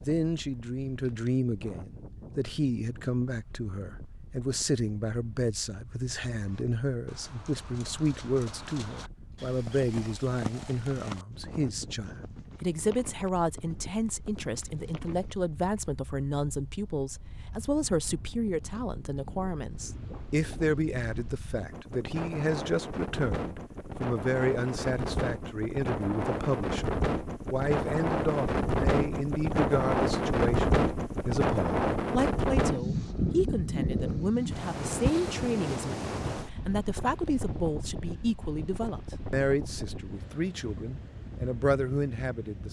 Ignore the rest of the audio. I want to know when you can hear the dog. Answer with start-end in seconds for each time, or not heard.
not heard.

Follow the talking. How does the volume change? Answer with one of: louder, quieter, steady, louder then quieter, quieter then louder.
steady.